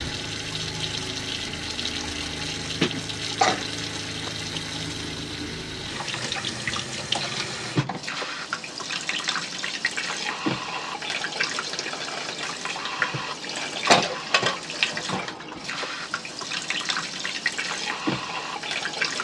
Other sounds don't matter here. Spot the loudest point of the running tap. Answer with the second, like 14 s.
14 s.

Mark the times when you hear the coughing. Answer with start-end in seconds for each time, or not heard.
2.8-3.6.